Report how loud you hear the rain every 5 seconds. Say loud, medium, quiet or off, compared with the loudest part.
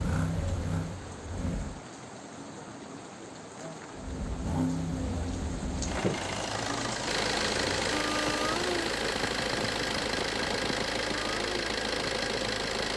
medium, loud, loud.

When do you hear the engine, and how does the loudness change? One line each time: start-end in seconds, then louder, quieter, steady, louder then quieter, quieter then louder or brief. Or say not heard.
0.0-1.8 brief
4.0-12.9 steady.